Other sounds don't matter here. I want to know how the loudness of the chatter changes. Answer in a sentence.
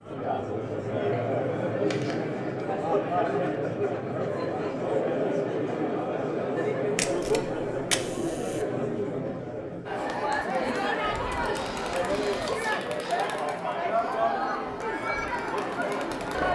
The loudness of the chatter stays about the same.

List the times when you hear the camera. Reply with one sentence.
The camera can be heard from 1.9 to 2.5 s, from 7.0 to 8.7 s and from 11.5 to 13.3 s.